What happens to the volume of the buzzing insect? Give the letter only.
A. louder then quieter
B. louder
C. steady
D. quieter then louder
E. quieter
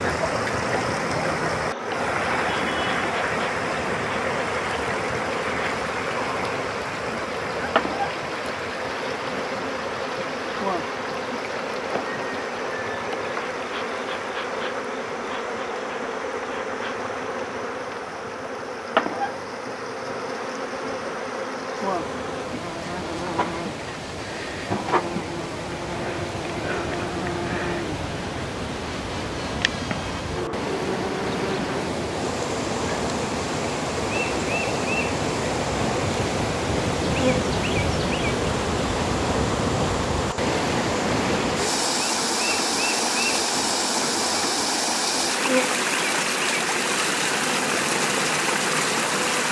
C.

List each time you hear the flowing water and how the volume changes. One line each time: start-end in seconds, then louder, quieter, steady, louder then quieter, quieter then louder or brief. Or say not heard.
0.0-49.4 quieter then louder.